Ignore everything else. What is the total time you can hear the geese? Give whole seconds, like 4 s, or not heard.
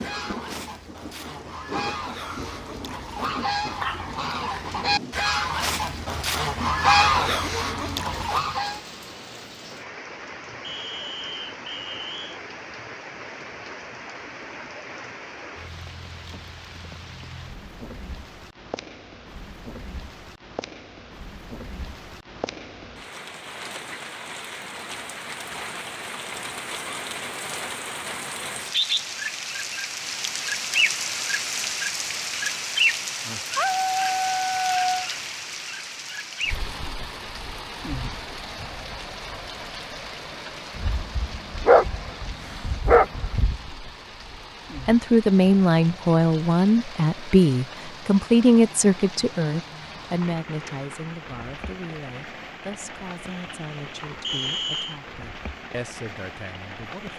9 s.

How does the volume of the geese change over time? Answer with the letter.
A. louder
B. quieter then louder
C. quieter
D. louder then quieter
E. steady
A.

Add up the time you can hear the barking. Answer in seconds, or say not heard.
6 s.